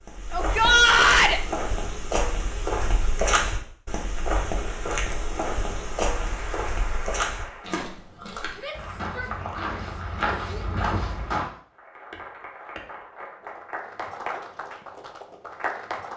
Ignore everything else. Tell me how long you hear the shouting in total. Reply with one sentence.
You can hear the shouting for 3 seconds altogether.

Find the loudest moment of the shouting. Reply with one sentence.
The loudest moment of the shouting is at 1 second.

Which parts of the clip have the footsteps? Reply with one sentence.
The footsteps can be heard from 0.0 to 11.5 s.